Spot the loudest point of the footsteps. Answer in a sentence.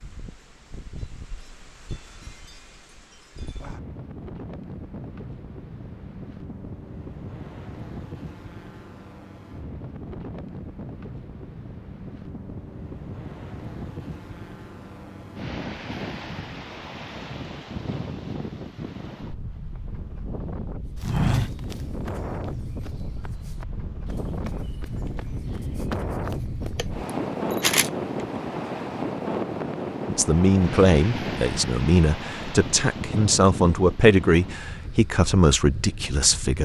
The volume of the footsteps peaks at 21 seconds.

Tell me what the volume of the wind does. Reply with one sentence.
The volume of the wind goes up.